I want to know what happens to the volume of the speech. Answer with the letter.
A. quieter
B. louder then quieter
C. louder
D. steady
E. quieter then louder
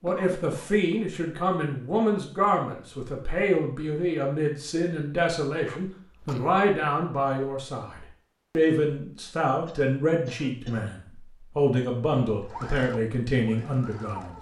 D.